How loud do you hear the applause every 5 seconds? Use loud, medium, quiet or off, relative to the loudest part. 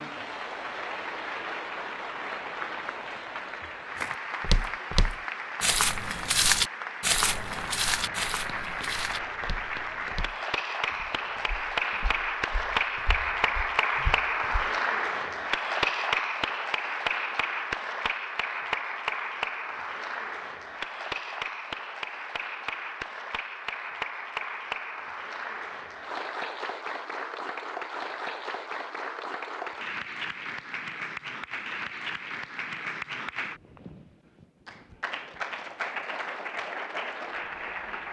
medium, medium, loud, loud, medium, medium, medium, medium.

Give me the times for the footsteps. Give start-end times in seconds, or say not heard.
4.0-14.7.